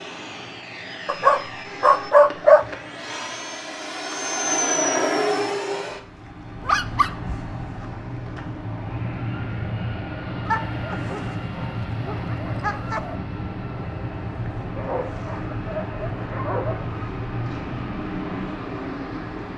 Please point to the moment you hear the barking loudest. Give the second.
2 s.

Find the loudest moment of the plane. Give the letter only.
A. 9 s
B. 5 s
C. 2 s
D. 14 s
B.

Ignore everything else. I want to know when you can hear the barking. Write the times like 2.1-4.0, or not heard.
1.1-2.6, 6.7-7.3, 10.4-13.2, 14.8-16.9.